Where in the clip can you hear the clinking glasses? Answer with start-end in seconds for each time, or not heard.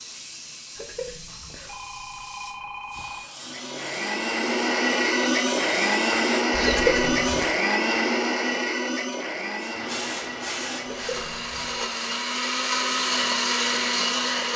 not heard.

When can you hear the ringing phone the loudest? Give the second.
7 s.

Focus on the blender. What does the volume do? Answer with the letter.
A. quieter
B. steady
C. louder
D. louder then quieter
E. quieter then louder
E.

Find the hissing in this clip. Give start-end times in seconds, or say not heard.
0.0-7.6, 9.6-12.2.